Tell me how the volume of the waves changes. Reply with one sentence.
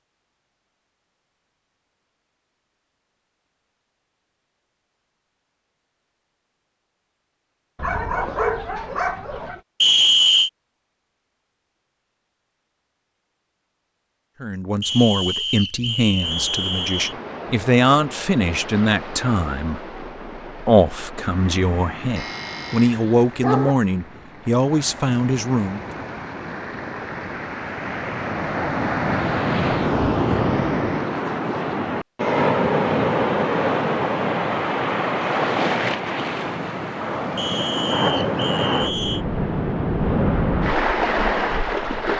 The volume of the waves goes up.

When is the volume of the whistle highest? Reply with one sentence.
The volume of the whistle peaks at 10 seconds.